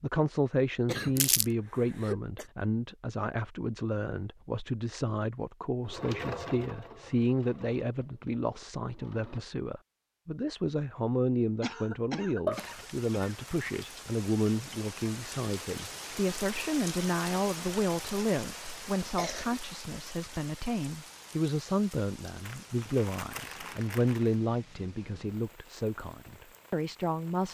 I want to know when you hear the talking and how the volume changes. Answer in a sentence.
The talking can be heard from 0.0 to 27.4 s, at a steady volume.